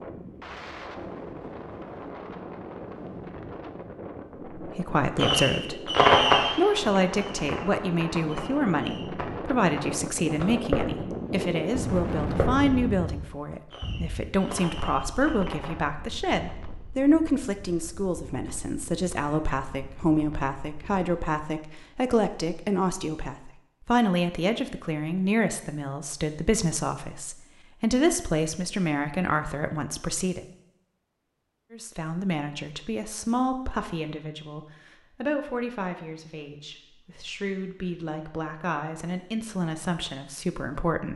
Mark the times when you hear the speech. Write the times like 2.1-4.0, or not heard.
4.5-30.4, 31.7-41.1.